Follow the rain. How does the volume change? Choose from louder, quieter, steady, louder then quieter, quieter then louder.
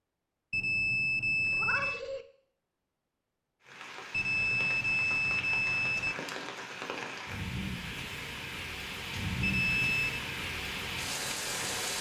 louder.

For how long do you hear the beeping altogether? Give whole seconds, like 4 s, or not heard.
4 s.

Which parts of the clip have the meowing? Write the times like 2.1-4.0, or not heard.
1.4-2.2.